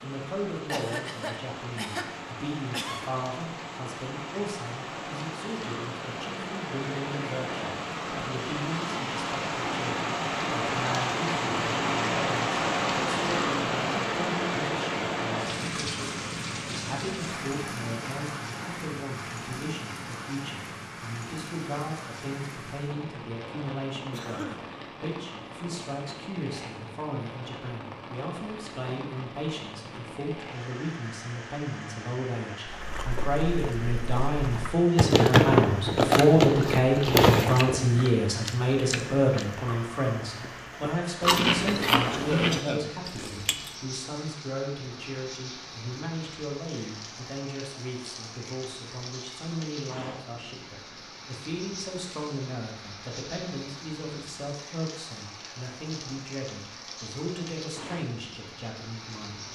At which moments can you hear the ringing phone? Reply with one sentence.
The ringing phone can't be heard in this clip.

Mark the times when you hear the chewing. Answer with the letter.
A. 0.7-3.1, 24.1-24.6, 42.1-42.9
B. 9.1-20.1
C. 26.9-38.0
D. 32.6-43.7
D.